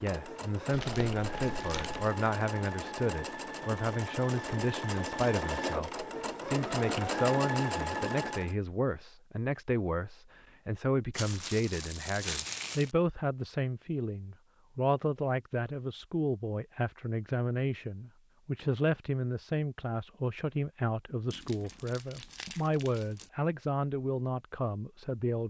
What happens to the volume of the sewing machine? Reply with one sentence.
The volume of the sewing machine goes up.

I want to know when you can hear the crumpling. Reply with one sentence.
The crumpling can be heard from 0.7 to 2.1 s, from 11.1 to 12.9 s and from 21.3 to 23.3 s.